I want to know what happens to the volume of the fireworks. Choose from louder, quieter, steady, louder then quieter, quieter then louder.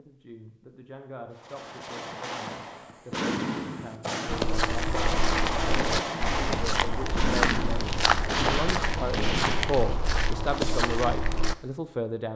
steady.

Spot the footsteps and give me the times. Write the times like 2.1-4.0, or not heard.
4.2-11.6.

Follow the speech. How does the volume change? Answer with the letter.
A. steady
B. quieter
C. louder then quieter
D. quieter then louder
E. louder
E.